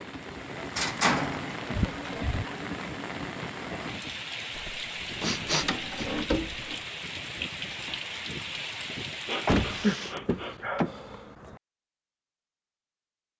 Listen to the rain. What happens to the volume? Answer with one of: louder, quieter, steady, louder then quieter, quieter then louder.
steady.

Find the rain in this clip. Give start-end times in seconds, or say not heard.
0.0-10.2.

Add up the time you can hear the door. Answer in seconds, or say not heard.
6 s.